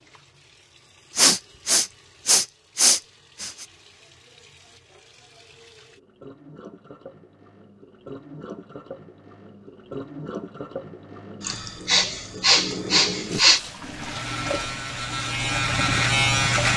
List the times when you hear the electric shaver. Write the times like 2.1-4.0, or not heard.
13.9-16.7.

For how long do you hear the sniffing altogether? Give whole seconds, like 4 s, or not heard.
5 s.